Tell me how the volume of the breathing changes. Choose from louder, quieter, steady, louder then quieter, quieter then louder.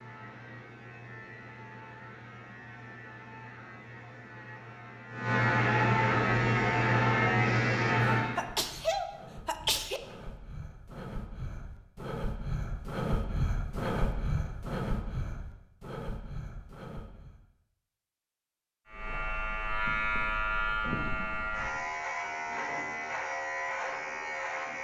louder then quieter.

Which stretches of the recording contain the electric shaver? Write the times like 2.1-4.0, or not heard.
0.0-8.4, 18.9-24.8.